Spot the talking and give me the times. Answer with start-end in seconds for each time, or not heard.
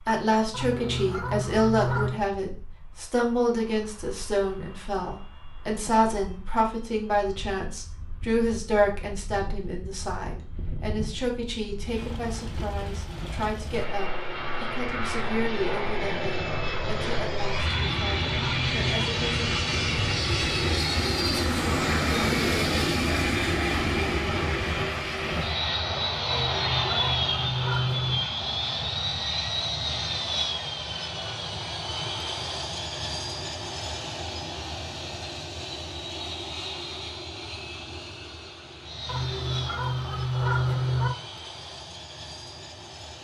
0.1-19.5.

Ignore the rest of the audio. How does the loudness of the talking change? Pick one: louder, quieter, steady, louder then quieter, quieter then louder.
quieter.